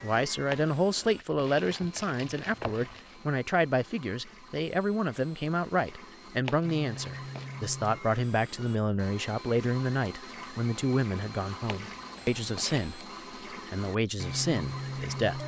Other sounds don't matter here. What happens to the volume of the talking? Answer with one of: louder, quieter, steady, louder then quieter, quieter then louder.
steady.